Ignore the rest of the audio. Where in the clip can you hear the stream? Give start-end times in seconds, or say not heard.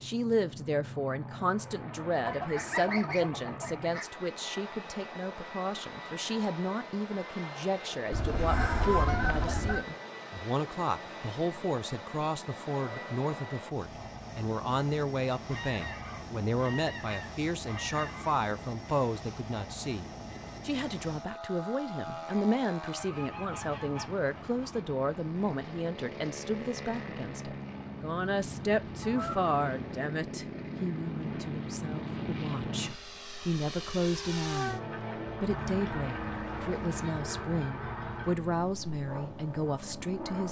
not heard.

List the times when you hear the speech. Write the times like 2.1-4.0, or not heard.
0.0-34.8, 35.4-40.4.